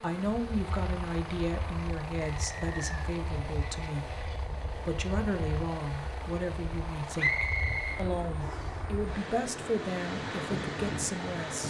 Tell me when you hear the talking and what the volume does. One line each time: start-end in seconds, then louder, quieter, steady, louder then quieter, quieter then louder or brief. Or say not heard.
0.0-11.6 steady.